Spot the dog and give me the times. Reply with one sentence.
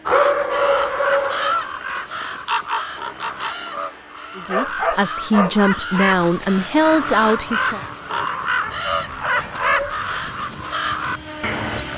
The dog can be heard from 0.1 to 1.6 s, from 4.5 to 5.5 s and from 8.6 to 10.2 s.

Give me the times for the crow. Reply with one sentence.
The crow can be heard from 0.1 to 11.8 s.